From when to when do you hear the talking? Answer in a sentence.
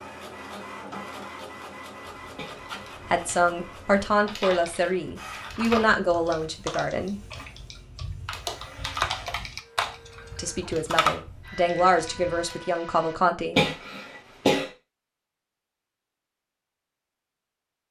You can hear the talking from 3.1 to 7.2 s and from 10.3 to 13.6 s.